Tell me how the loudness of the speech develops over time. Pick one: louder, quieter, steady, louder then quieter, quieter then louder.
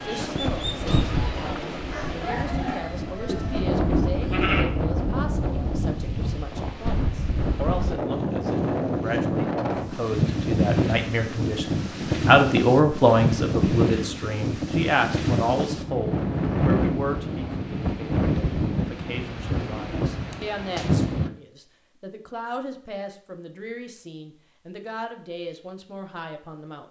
louder then quieter.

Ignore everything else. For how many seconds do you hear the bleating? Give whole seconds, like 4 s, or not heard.
2 s.